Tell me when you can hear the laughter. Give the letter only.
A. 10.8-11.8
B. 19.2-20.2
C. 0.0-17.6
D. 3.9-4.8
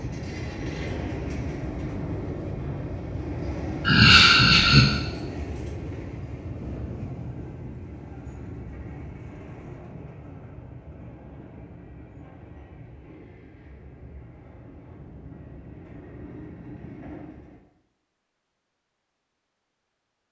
D.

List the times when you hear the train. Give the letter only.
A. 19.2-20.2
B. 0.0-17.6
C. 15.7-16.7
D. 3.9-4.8
B.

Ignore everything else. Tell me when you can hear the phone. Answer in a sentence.
You can't hear the phone here.